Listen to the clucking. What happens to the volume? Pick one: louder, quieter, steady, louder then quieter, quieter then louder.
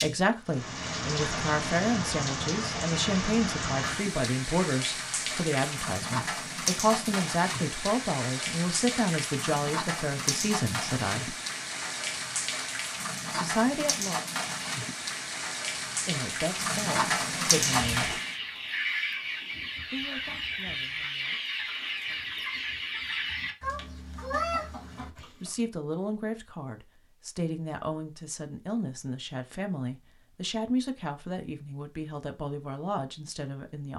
steady.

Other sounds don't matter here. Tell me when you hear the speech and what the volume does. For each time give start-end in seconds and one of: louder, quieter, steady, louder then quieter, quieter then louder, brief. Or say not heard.
0.0-11.3 steady
13.3-14.2 brief
15.8-18.2 brief
19.9-22.3 brief
24.9-33.9 steady.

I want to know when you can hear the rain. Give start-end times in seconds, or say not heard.
0.0-18.4.